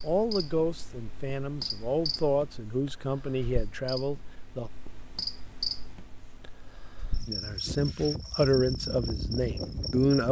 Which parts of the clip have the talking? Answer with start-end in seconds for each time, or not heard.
0.0-4.7, 7.2-10.2.